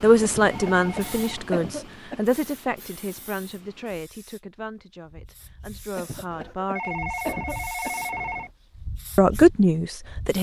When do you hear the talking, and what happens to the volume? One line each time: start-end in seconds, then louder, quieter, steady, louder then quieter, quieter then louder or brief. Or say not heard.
0.0-7.3 quieter then louder
9.2-10.3 brief.